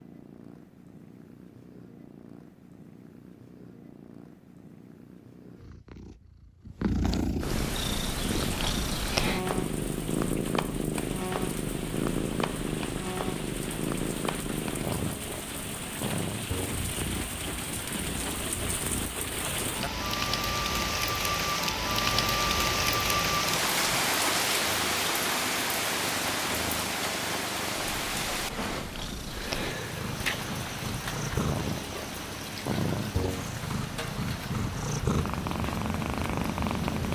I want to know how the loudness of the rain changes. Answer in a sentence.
The loudness of the rain goes up, then down.